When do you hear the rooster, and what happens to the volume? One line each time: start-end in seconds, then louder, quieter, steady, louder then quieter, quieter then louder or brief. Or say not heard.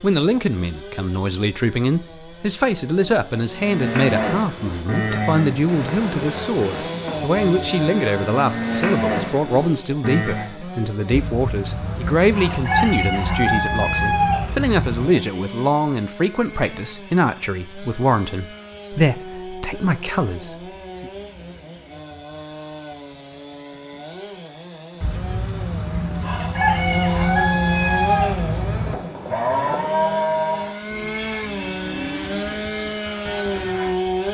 11.1-15.1 louder
25.0-29.0 louder.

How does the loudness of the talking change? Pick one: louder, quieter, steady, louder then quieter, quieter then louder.
steady.